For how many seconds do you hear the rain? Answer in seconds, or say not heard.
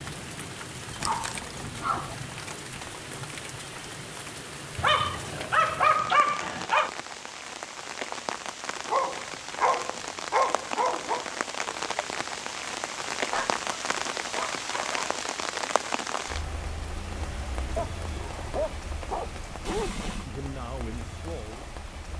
22 s.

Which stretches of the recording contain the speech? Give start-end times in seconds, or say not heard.
20.2-22.1.